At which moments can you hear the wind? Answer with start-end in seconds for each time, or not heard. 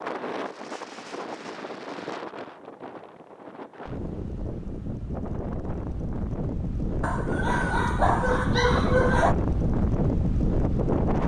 0.0-11.2.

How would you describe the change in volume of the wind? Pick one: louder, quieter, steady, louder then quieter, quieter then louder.
louder.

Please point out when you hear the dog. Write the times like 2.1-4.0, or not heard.
7.0-9.3.